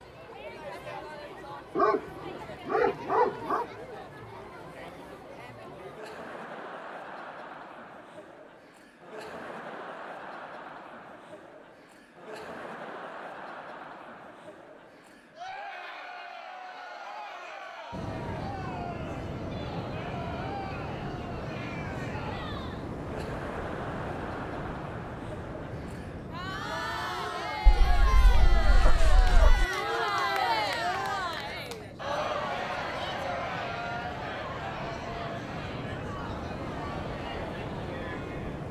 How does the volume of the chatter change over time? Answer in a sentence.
The volume of the chatter goes up.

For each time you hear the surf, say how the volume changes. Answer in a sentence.
The surf can be heard from 17.9 to 38.6 s, getting quieter then louder.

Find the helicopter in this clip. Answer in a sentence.
You can't hear the helicopter here.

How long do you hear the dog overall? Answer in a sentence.
You can hear the dog for 4 seconds altogether.